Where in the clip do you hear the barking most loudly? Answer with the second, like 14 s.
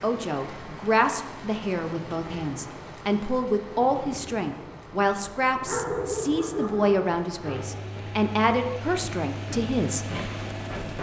6 s.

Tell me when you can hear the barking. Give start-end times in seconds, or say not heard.
5.7-7.6.